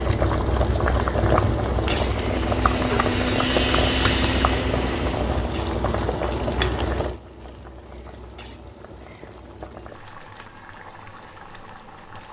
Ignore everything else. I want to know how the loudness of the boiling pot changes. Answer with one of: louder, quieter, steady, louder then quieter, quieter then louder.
quieter.